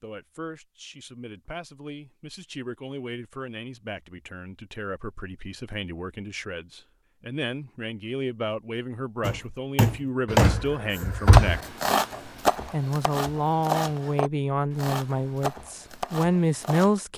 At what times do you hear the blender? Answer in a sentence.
You can't hear the blender here.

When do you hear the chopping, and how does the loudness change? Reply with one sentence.
You can hear the chopping from 9.2 to 16.9 s, getting quieter.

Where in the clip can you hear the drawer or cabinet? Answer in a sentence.
You can hear the drawer or cabinet from 10.2 to 11.6 s.